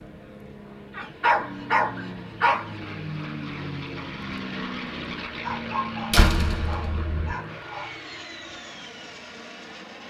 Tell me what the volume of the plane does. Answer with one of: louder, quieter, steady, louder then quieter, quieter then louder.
louder then quieter.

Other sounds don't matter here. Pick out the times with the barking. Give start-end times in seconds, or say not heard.
0.9-2.8, 5.4-8.0.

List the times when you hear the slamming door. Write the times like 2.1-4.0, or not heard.
6.1-7.3.